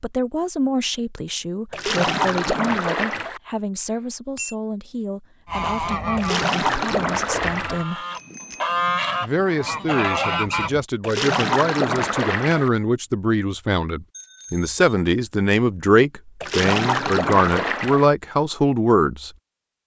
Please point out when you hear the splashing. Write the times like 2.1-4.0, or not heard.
1.7-3.4, 6.2-7.8, 11.0-12.7, 16.4-18.1.